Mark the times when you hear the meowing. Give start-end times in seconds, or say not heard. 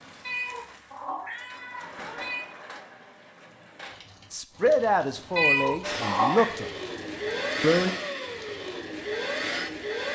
0.2-2.5, 5.3-6.5.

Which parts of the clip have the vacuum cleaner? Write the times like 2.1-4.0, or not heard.
5.8-10.1.